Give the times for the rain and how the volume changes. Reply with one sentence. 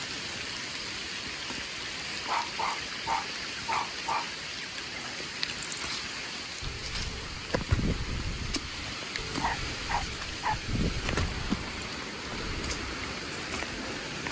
The rain can be heard from 0.0 to 14.2 s, at a steady volume.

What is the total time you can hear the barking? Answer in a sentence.
You can hear the barking for 4 seconds altogether.